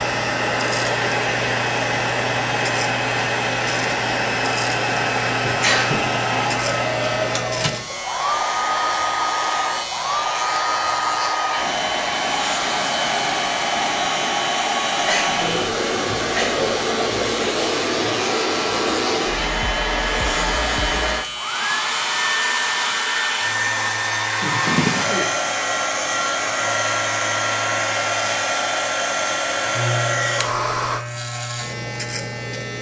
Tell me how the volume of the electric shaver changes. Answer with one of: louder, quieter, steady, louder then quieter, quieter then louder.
steady.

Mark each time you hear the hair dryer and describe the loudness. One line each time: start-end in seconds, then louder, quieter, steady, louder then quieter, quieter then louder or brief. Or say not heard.
0.0-31.1 steady.